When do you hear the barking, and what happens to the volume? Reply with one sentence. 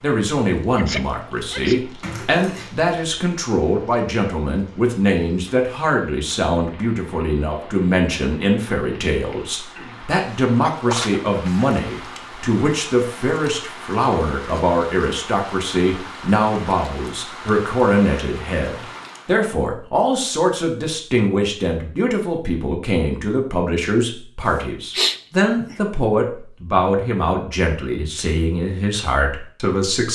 The barking can't be heard in this clip.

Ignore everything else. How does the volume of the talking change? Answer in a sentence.
The loudness of the talking stays about the same.